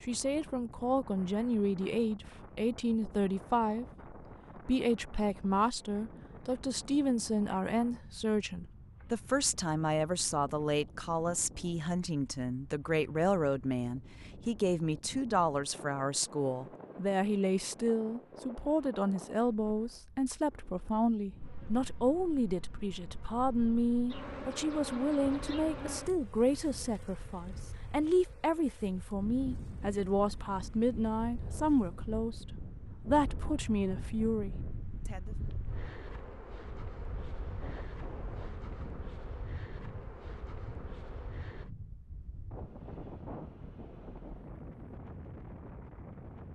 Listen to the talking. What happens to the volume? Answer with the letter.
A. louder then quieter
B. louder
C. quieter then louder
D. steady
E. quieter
D.